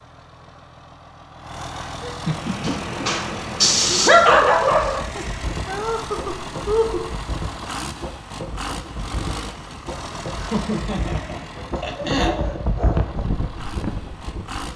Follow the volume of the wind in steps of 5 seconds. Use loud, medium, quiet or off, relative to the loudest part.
loud, medium, loud.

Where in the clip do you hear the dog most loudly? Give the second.
4 s.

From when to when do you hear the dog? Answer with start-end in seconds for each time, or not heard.
2.6-5.0, 11.6-13.2.